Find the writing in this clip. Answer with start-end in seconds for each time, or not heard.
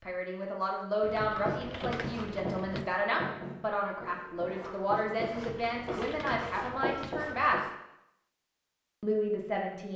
1.4-7.8.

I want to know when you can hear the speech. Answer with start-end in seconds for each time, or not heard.
0.0-7.6, 9.0-9.9.